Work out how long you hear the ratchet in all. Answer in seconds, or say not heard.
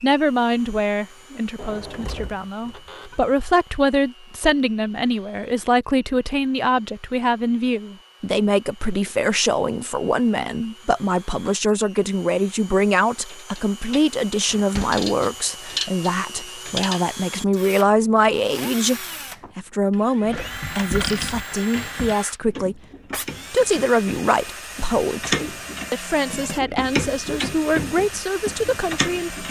13 s.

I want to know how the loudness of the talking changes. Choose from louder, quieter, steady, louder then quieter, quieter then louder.
steady.